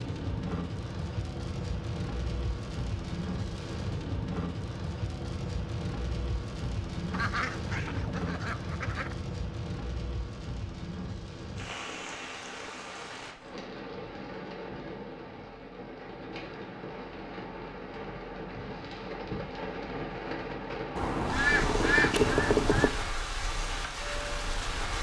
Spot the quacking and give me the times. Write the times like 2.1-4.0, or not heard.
7.1-9.2, 20.9-22.9.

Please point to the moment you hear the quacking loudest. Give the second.
22 s.